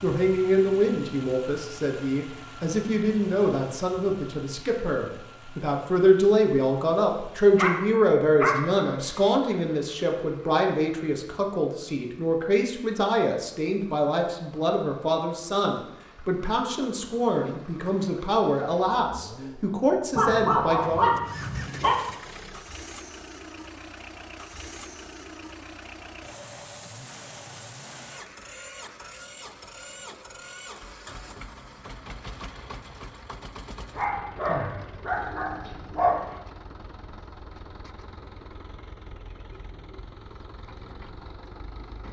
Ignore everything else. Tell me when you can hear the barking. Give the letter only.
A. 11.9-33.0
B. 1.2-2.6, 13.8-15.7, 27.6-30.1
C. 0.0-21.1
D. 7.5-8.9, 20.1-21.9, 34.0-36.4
D.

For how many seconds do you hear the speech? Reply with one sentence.
You can hear the speech for 21 seconds altogether.